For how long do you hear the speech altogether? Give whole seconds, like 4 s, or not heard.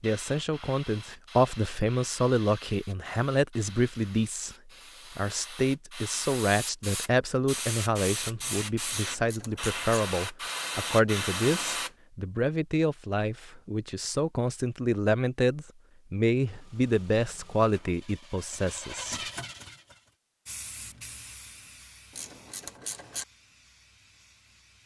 19 s.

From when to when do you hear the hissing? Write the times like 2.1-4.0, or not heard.
0.0-11.9, 20.4-24.8.